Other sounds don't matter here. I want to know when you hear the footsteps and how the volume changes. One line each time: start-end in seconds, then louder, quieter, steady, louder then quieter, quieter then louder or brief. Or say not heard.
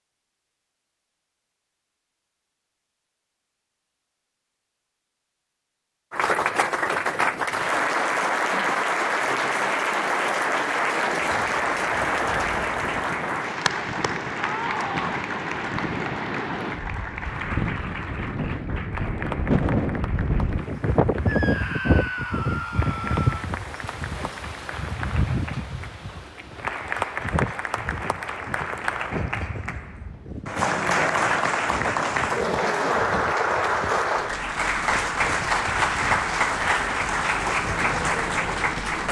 not heard.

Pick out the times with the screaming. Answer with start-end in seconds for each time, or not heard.
14.4-15.2, 21.2-23.5.